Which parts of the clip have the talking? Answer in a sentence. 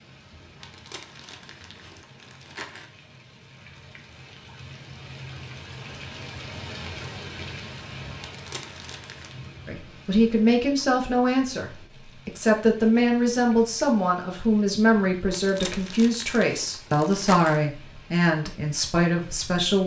You can hear the talking from 9.7 to 19.8 s.